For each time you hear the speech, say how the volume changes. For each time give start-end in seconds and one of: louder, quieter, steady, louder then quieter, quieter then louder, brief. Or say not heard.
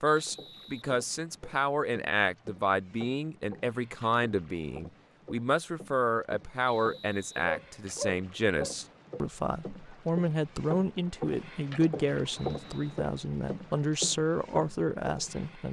0.0-15.6 steady.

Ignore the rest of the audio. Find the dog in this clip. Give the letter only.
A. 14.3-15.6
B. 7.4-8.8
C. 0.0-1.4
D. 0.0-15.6
B.